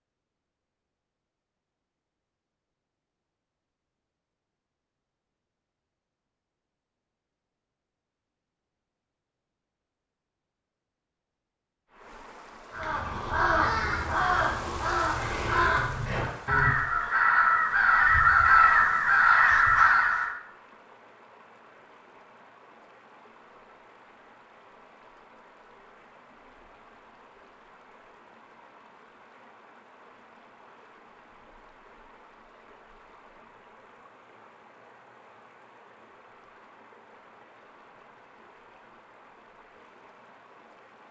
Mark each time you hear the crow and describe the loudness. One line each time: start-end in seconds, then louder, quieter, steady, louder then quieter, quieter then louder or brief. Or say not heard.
12.7-20.4 louder.